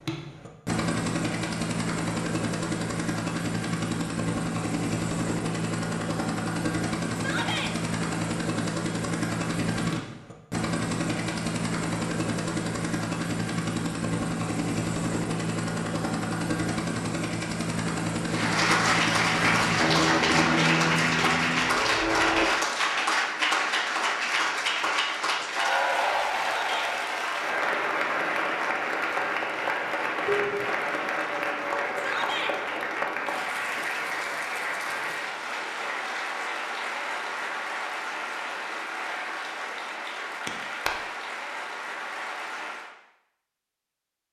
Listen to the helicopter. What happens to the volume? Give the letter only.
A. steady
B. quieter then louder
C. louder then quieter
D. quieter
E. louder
A.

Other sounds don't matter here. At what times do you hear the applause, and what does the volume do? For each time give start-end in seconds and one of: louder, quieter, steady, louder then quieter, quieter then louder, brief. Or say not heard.
18.2-43.0 quieter.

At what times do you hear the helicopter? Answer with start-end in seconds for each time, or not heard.
0.0-22.5.